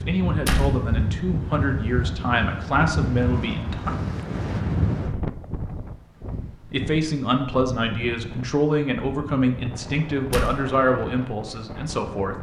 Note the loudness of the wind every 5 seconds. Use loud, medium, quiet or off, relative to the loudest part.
loud, medium, medium.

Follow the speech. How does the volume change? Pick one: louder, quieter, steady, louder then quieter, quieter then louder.
steady.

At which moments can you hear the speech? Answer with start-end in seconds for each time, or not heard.
0.0-4.0, 6.7-12.3.